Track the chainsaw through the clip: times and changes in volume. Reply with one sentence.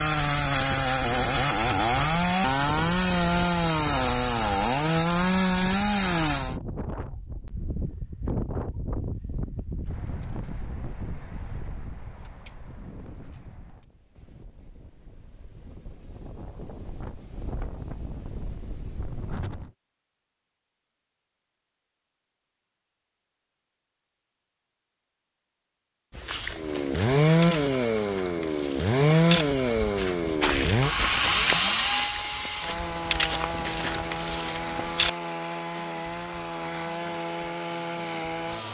The chainsaw can be heard from 0.0 to 6.5 s, at a steady volume; and from 26.5 to 38.7 s, getting quieter.